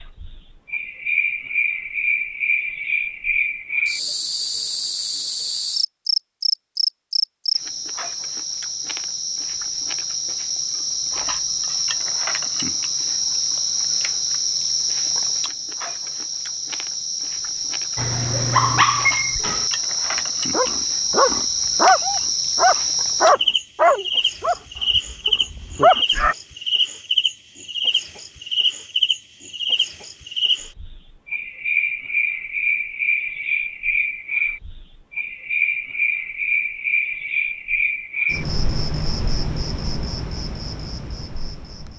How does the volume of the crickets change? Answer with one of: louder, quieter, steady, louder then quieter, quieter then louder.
steady.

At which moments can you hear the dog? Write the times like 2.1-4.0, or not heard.
17.9-26.4.